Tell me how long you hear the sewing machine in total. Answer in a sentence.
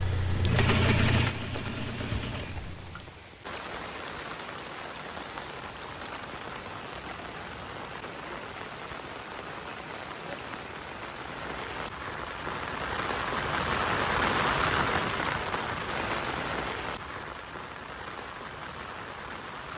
You can hear the sewing machine for 3 seconds altogether.